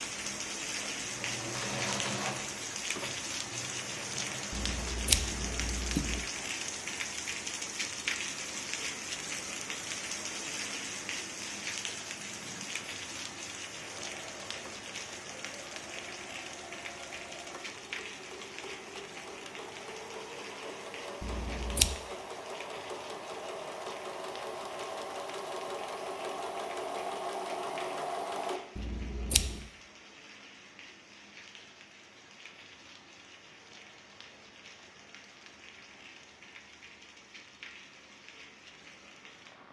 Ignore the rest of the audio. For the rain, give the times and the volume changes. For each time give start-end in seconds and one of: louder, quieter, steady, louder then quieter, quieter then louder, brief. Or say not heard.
0.0-39.6 quieter.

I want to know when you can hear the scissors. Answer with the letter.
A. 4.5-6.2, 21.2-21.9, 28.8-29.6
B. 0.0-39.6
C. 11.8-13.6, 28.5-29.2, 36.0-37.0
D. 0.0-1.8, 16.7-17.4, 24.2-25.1
A.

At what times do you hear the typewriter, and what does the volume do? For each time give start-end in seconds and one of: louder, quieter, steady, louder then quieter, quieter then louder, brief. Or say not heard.
not heard.